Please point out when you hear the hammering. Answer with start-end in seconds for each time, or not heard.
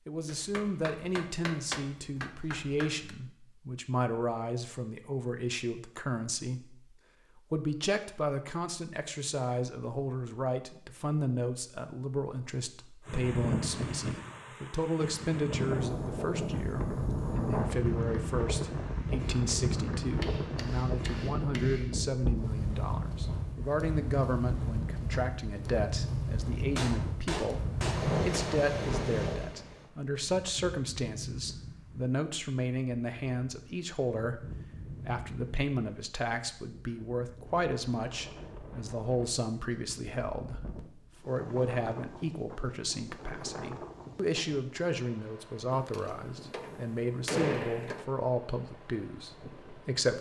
0.2-3.1, 20.1-22.0, 26.8-28.6, 45.7-48.0.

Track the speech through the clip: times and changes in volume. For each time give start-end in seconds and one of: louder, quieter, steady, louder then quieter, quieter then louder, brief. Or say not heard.
0.1-50.1 steady.